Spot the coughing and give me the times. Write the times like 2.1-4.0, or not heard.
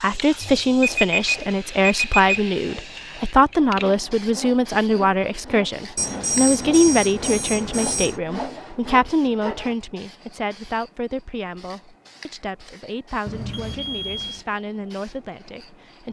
not heard.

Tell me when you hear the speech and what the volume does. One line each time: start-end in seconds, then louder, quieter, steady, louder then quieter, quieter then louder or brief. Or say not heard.
0.0-16.0 quieter.